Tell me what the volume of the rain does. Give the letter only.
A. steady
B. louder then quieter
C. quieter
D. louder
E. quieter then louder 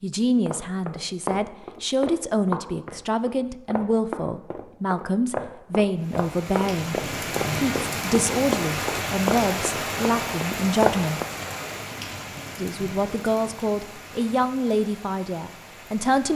C.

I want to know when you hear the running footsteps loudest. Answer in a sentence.
The volume of the running footsteps peaks at 11 seconds.